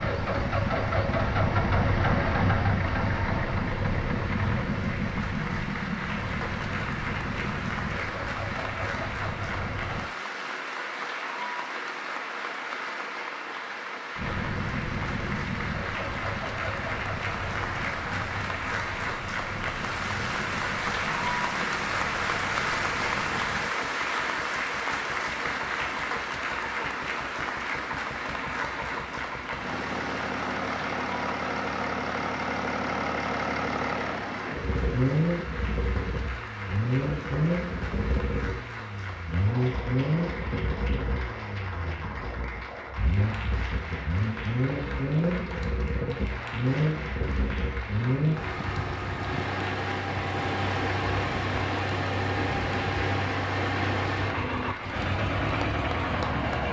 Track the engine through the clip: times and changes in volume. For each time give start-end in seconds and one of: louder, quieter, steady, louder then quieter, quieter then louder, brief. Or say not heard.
0.0-10.1 quieter
14.2-56.6 louder.